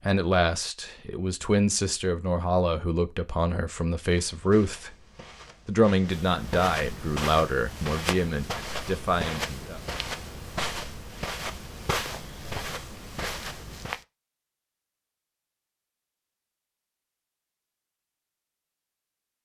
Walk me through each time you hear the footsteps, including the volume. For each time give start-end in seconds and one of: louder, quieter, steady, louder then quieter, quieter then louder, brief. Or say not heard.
4.0-14.1 louder.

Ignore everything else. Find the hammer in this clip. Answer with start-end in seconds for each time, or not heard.
not heard.